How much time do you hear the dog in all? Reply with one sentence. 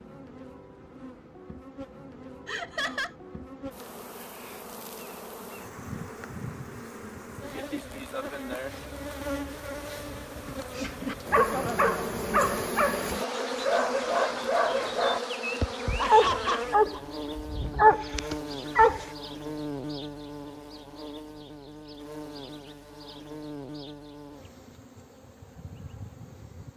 You can hear the dog for 8 seconds altogether.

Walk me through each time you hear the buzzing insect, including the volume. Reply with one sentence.
You can hear the buzzing insect from 0.0 to 26.7 s, getting louder then quieter.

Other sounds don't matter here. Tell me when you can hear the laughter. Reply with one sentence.
The laughter can be heard from 2.5 to 3.1 s and from 15.9 to 17.0 s.